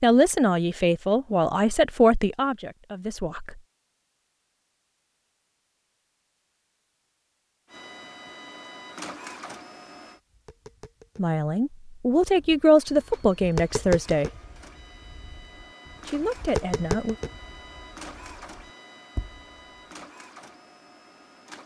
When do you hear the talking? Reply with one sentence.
The talking can be heard from 0.0 to 3.5 s, from 11.2 to 14.3 s and from 16.1 to 17.1 s.